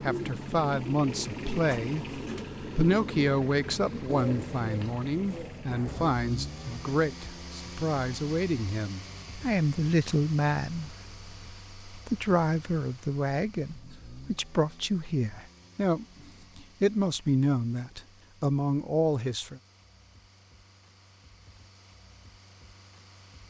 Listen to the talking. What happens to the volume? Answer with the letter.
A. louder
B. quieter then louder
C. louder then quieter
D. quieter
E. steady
E.